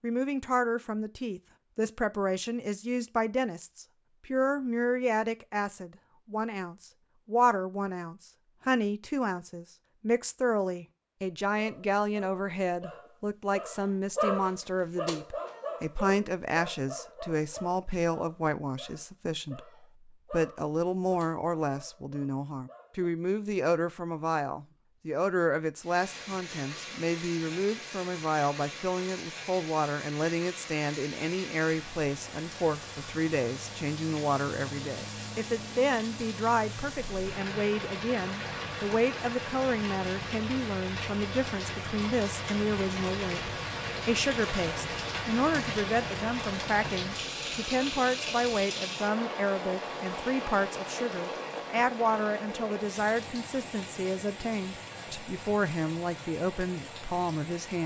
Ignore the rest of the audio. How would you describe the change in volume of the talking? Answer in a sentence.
The volume of the talking stays about the same.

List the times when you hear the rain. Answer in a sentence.
You can hear the rain from 25.8 to 57.8 s.